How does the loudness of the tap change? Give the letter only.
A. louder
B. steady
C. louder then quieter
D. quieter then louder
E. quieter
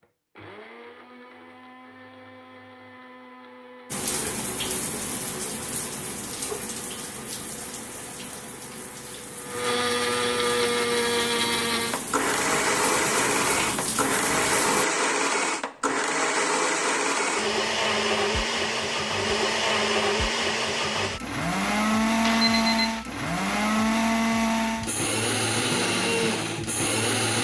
D.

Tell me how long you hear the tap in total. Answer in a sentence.
The tap can be heard for 11 seconds in total.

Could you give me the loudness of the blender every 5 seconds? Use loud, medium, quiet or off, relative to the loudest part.
quiet, medium, loud, loud, loud, loud.